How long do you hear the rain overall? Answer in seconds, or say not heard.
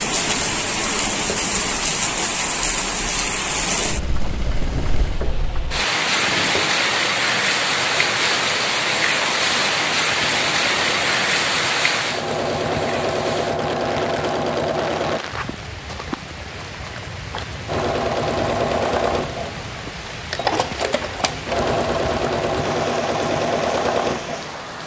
25 s.